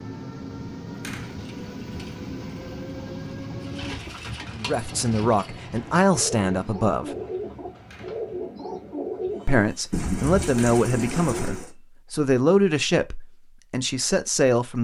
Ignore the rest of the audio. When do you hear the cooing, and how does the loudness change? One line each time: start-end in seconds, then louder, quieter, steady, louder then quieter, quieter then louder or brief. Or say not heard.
1.2-11.7 louder.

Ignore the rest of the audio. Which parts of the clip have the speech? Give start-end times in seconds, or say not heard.
4.5-7.1, 9.4-14.7.